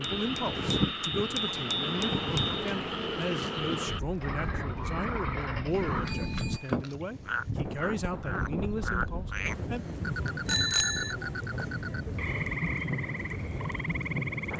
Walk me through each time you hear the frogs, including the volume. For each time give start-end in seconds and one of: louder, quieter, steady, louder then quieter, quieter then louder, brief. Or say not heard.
0.0-14.5 steady.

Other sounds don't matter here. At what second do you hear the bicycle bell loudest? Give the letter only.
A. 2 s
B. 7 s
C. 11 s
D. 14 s
C.